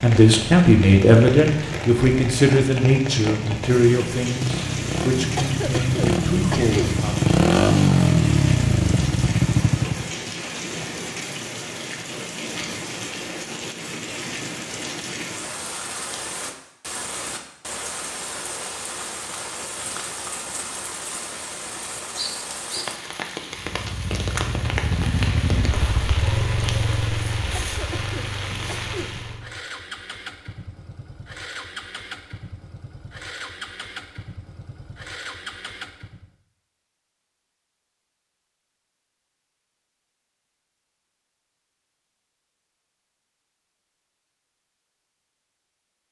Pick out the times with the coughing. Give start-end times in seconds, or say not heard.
5.3-7.0, 27.5-29.1.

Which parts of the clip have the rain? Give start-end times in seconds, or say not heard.
0.0-29.4.